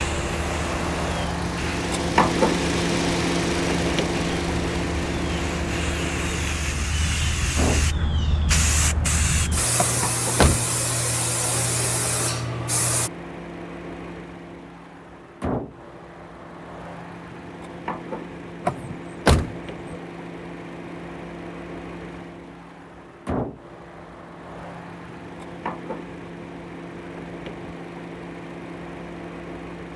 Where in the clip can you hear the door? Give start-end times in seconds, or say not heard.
9.8-11.1, 18.6-20.0.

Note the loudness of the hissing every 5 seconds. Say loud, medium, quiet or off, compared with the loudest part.
medium, loud, loud, off, off, off.